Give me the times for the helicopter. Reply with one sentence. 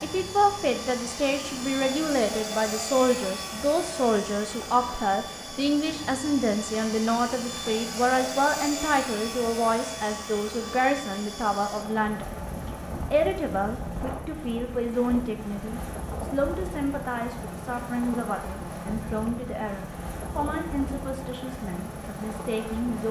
You can hear the helicopter from 0.0 to 23.0 s.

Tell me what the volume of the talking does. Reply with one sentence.
The loudness of the talking goes down.